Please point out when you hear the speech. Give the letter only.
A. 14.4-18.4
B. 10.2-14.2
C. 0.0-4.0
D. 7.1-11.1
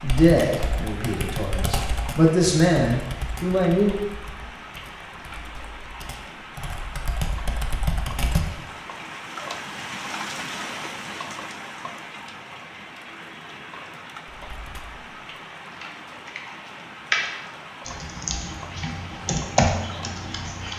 C.